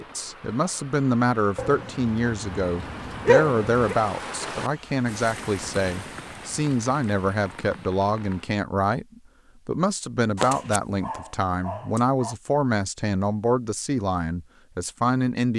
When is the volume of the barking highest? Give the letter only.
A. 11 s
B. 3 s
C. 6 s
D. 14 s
B.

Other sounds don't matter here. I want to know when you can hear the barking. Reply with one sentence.
The barking can be heard from 1.6 to 4.0 s and from 10.3 to 12.3 s.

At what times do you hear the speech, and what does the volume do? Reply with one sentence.
You can hear the speech from 0.0 to 15.5 s, at a steady volume.